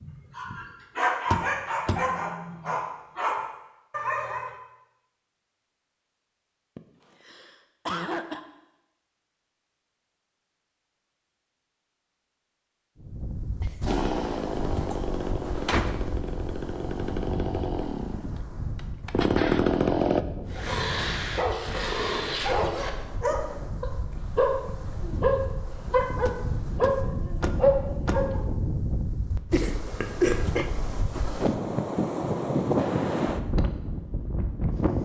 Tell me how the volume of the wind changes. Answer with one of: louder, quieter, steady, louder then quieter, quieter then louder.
louder.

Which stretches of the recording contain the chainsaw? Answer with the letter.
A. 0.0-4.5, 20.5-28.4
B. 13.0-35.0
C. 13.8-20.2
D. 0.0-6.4
C.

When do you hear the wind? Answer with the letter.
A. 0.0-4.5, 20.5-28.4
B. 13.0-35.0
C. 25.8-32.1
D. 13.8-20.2
B.